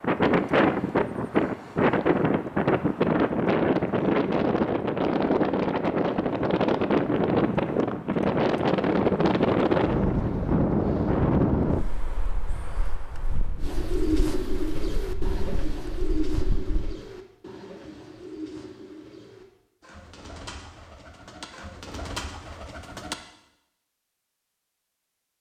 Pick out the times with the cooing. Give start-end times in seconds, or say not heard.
13.6-23.1.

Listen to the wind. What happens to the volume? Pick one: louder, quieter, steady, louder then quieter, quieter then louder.
quieter.